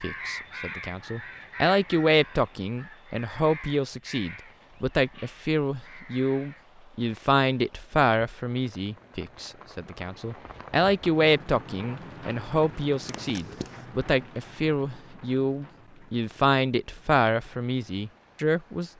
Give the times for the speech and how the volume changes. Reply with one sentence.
You can hear the speech from 0.0 to 18.9 s, at a steady volume.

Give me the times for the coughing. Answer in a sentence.
The coughing can be heard from 13.1 to 13.8 s.